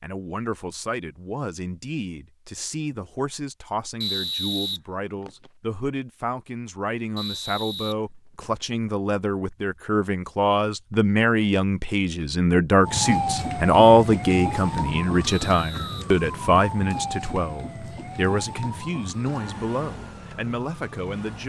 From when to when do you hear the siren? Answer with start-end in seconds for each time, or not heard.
12.8-21.4.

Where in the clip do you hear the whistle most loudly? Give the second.
4 s.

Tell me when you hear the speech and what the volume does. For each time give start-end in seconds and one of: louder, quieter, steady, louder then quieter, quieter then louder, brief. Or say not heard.
0.0-21.4 louder then quieter.